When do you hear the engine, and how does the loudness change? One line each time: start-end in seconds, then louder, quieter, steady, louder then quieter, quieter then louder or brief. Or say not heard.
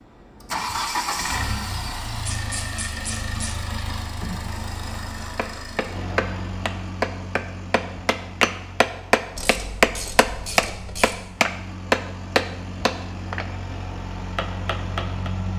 0.0-15.5 quieter then louder.